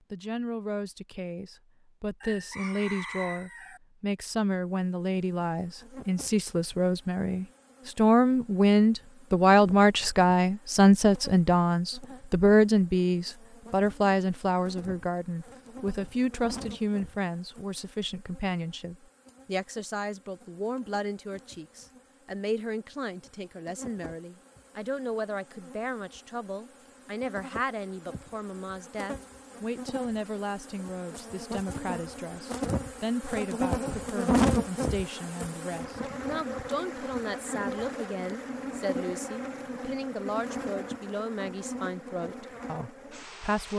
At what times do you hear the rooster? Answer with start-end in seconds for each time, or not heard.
2.2-3.8.